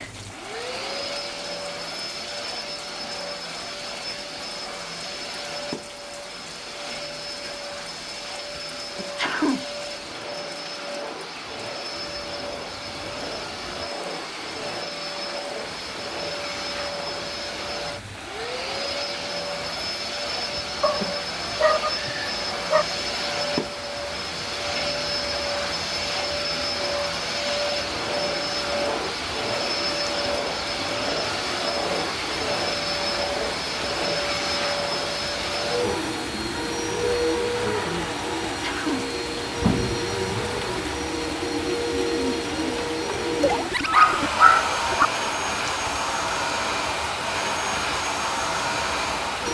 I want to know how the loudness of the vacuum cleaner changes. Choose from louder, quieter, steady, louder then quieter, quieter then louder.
louder.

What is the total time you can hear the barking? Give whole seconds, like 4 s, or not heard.
4 s.